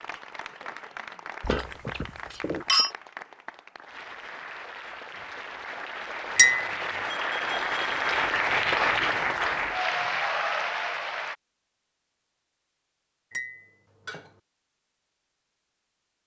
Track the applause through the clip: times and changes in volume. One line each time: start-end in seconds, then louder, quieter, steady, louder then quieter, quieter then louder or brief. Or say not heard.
0.0-11.3 louder.